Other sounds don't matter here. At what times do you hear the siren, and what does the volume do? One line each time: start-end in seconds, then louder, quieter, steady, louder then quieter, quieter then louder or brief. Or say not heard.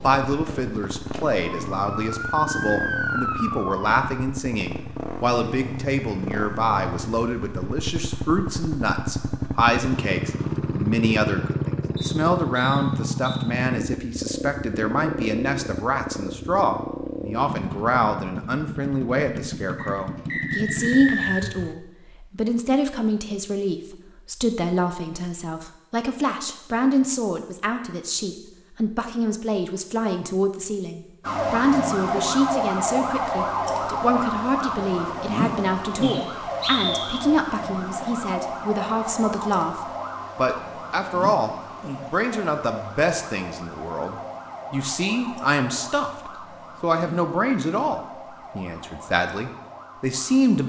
0.0-4.0 louder
31.2-50.6 quieter.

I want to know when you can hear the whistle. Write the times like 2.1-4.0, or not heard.
11.9-13.4, 19.8-21.5, 36.0-37.2.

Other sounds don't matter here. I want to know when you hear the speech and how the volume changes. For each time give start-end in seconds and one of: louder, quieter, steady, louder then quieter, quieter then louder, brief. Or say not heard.
0.0-50.6 steady.